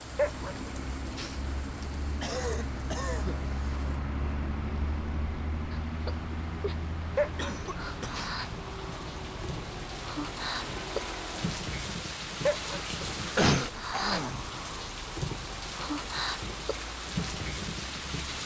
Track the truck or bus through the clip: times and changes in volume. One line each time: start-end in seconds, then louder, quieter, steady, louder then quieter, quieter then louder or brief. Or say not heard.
0.0-18.4 quieter.